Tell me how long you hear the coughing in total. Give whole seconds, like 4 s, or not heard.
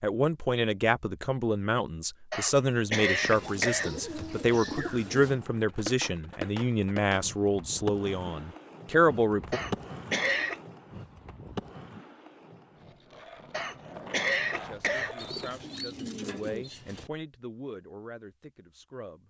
4 s.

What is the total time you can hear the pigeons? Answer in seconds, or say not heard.
4 s.